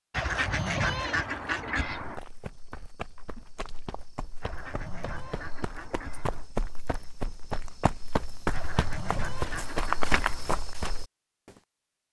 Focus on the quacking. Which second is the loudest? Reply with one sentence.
The loudest moment of the quacking is at 1 second.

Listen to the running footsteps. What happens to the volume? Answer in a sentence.
The volume of the running footsteps goes up.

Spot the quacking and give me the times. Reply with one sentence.
You can hear the quacking from 0.1 to 2.2 s, from 4.4 to 6.5 s and from 8.5 to 10.6 s.